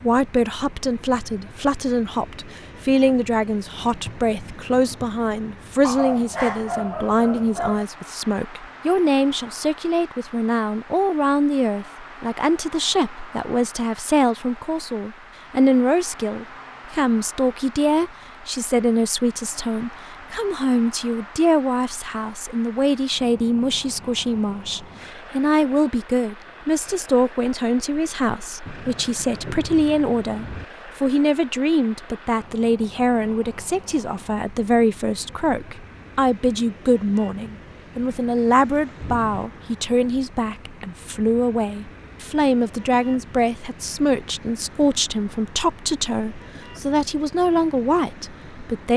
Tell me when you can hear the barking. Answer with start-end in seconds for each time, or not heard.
5.8-7.8.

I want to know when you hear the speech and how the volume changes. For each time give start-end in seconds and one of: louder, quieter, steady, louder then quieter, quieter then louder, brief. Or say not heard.
0.0-48.9 steady.